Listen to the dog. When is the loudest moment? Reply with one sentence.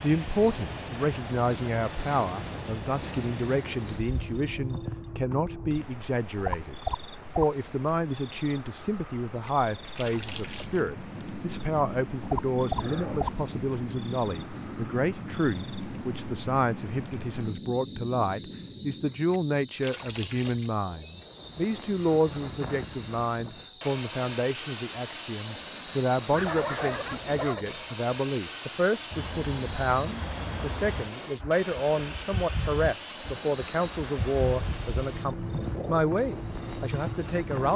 The loudest moment of the dog is at 27 seconds.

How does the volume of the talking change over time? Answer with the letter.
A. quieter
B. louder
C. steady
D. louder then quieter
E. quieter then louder
C.